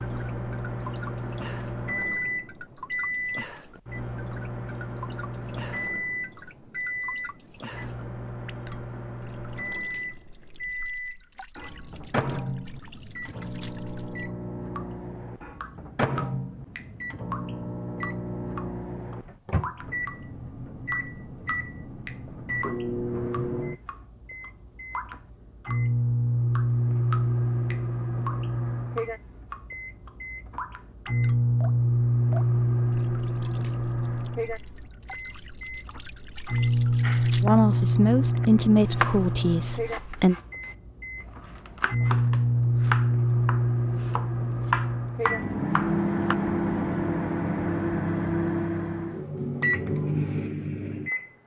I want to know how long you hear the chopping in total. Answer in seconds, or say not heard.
9 s.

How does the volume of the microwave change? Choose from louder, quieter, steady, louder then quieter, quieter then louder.
louder.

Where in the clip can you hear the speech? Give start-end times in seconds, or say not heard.
37.4-40.4.